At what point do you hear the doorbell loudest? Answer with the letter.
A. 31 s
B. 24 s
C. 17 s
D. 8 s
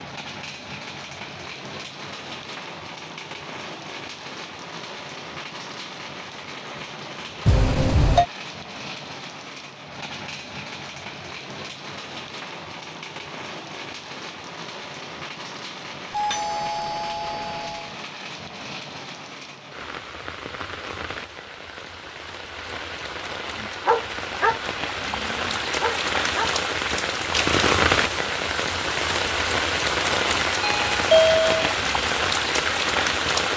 A.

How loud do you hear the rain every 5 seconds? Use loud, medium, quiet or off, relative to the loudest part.
quiet, quiet, quiet, quiet, medium, loud, loud.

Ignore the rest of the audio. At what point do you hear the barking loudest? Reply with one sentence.
The loudest moment of the barking is at 24 seconds.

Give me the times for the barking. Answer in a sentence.
The barking can be heard from 23.6 to 26.6 s.